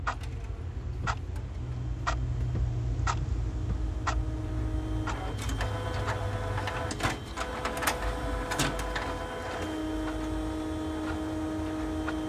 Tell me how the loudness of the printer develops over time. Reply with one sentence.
The loudness of the printer goes up.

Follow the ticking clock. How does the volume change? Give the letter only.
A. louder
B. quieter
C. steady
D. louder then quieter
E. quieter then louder
B.